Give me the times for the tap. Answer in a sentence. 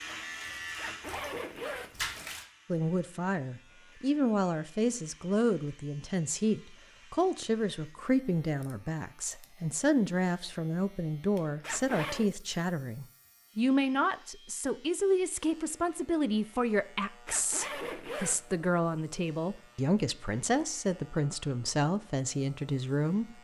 The tap can be heard from 0.0 to 2.5 s.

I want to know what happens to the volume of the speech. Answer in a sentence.
The loudness of the speech stays about the same.